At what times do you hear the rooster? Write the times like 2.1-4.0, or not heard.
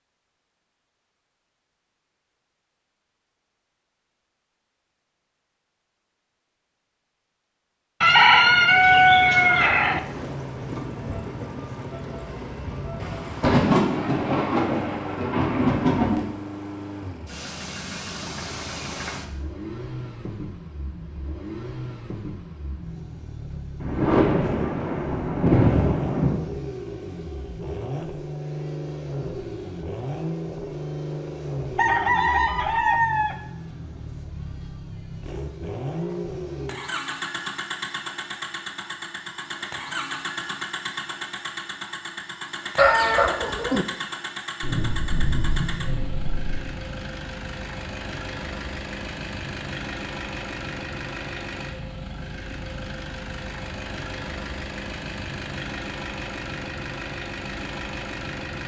8.0-10.0, 31.8-33.4, 42.8-43.9.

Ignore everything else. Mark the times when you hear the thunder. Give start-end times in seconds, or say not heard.
13.0-16.2, 23.8-26.4, 44.6-46.6.